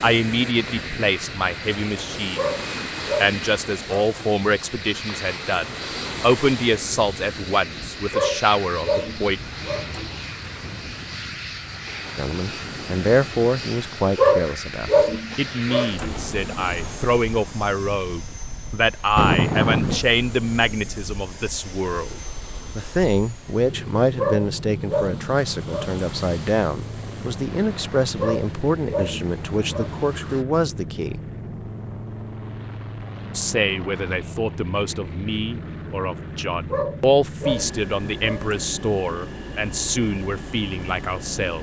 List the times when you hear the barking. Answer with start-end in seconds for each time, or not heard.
2.4-4.3, 8.1-10.1, 14.2-16.1, 24.1-26.1, 28.1-29.9, 36.7-38.6.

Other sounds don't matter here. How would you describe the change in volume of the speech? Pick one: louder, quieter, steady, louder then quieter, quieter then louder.
steady.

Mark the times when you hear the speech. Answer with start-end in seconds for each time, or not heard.
0.0-9.4, 12.2-31.2, 33.4-41.5.